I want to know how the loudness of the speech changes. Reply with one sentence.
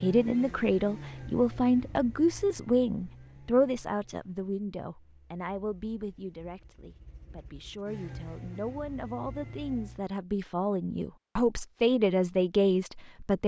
The volume of the speech goes down, then up.